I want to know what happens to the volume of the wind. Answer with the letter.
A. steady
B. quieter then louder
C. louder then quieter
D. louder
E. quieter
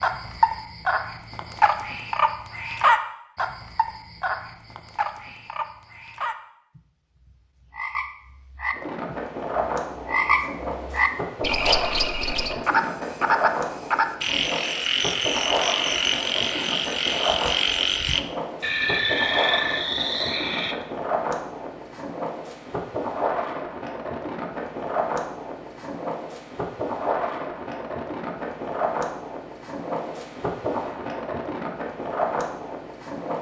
A.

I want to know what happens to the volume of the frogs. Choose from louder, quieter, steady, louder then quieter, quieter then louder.
quieter then louder.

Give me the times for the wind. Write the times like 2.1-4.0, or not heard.
8.7-33.3.